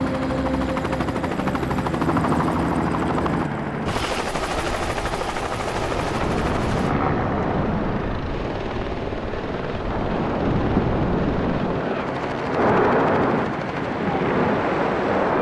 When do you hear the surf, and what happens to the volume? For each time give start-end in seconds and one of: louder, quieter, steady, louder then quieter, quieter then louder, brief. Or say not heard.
0.0-15.3 louder.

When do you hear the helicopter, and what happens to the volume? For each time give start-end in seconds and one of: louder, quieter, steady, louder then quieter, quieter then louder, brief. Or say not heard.
0.0-15.3 quieter.